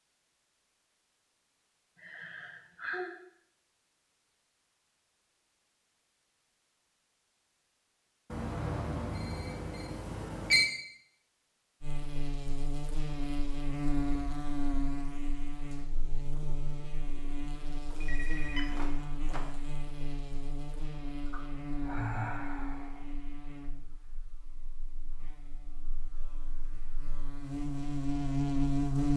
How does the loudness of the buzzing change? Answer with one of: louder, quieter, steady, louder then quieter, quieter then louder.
quieter then louder.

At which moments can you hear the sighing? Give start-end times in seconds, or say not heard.
1.9-3.1, 21.2-23.1.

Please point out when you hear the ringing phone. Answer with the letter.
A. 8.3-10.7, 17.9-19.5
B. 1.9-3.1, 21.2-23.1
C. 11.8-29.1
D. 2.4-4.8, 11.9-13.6
A.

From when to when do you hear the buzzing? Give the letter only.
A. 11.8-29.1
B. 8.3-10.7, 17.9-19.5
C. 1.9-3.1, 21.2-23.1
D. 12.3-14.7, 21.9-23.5
A.